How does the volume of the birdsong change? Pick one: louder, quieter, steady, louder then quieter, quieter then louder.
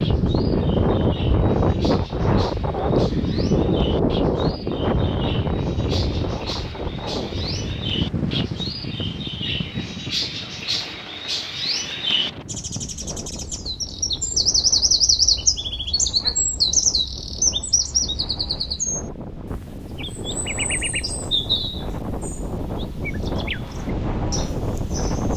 louder then quieter.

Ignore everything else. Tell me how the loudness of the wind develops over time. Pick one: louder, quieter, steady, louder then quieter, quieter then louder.
quieter then louder.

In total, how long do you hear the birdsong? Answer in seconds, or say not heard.
25 s.